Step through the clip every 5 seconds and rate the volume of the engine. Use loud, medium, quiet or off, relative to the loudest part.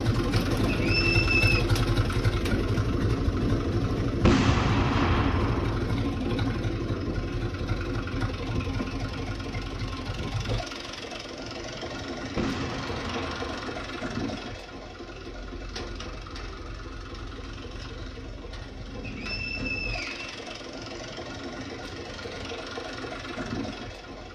loud, loud, medium, quiet, medium.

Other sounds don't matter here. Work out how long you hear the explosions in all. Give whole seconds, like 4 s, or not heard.
3 s.